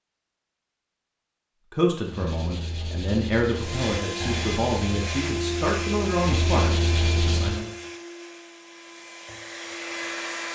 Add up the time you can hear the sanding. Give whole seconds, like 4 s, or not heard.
6 s.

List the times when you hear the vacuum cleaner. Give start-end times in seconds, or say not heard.
3.5-10.5.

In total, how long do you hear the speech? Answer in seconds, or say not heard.
6 s.